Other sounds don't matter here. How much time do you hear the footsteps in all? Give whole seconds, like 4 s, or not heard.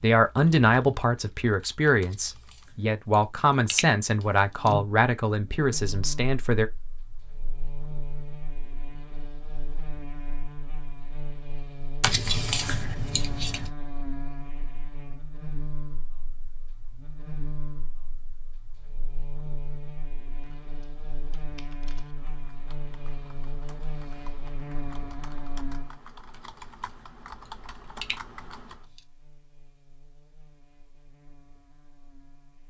not heard.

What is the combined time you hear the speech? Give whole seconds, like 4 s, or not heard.
7 s.